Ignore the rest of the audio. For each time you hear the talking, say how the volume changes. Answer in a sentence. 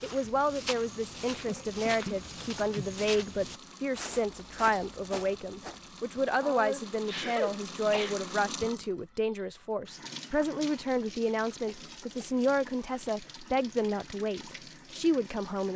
You can hear the talking from 0.0 to 15.7 s, at a steady volume.